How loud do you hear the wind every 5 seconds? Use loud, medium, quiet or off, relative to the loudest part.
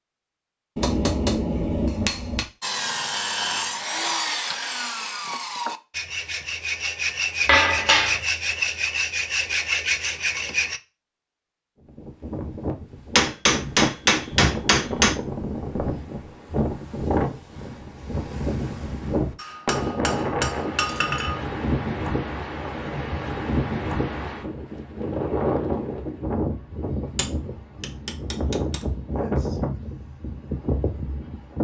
off, off, loud, loud, loud, loud, loud.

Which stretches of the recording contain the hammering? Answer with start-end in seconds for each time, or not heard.
0.8-2.5, 7.5-8.2, 13.2-15.2, 19.4-21.4, 27.1-28.9.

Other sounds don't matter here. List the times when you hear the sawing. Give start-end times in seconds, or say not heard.
2.6-10.8.